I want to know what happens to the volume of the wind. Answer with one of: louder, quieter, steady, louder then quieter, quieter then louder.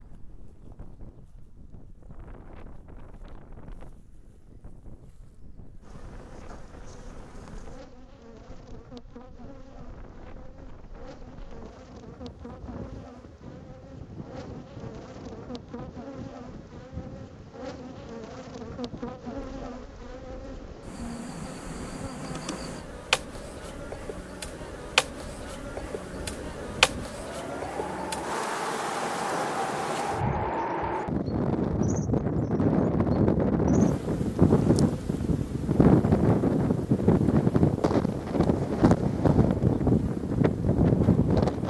louder.